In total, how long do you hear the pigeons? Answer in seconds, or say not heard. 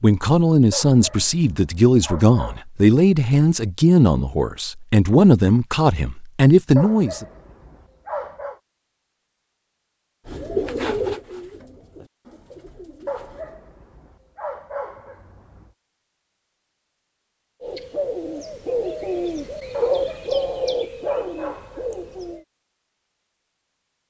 8 s.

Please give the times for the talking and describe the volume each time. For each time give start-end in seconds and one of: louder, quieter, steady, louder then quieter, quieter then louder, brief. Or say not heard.
0.0-7.2 steady.